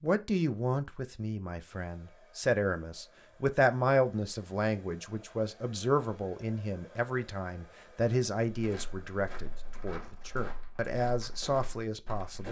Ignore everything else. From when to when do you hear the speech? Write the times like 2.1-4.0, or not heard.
0.0-12.4.